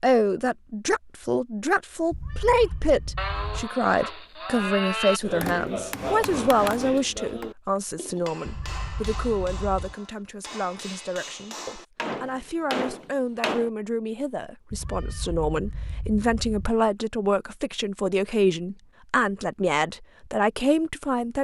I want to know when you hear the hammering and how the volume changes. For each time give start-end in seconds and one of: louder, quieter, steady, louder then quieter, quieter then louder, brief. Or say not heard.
5.2-13.7 quieter then louder.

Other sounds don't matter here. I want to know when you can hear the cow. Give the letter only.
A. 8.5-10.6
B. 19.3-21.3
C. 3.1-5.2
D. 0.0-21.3
C.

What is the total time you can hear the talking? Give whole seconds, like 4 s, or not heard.
21 s.